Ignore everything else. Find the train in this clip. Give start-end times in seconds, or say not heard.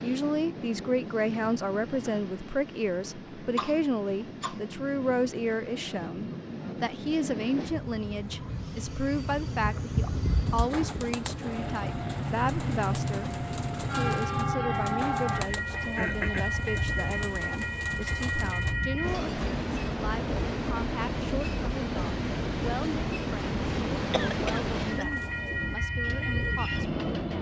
0.0-27.3.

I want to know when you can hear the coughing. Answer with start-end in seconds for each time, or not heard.
3.2-4.6, 15.4-16.6, 24.1-25.1.